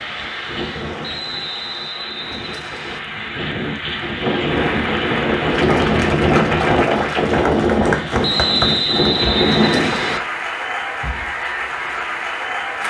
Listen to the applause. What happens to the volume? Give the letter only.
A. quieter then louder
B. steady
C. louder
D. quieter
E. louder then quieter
C.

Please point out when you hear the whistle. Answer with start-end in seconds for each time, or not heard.
1.0-3.0, 8.2-10.2.